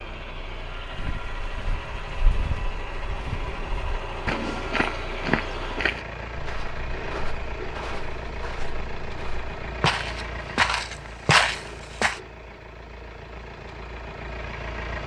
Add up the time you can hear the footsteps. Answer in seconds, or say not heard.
11 s.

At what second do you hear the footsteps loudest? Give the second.
11 s.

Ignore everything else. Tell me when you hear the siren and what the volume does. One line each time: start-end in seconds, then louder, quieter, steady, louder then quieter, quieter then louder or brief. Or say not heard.
not heard.